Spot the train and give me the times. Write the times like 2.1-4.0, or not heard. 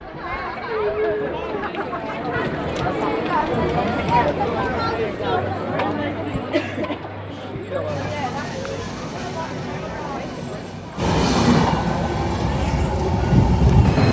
7.8-14.0.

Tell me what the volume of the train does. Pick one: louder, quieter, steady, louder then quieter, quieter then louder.
louder.